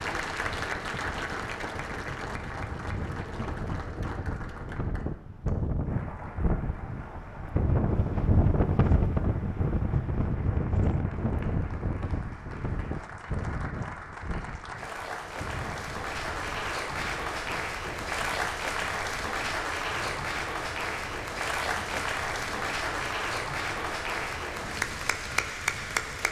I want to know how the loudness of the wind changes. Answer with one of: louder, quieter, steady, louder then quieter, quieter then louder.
louder then quieter.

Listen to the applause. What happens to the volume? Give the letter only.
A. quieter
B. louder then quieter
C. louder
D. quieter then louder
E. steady
D.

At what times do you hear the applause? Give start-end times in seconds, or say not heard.
0.0-26.2.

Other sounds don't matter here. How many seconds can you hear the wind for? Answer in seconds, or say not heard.
26 s.